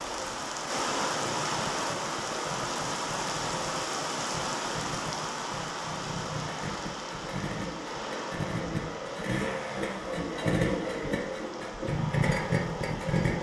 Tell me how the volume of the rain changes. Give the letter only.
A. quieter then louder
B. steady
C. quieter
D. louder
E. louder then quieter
C.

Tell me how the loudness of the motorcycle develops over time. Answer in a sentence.
The loudness of the motorcycle goes up.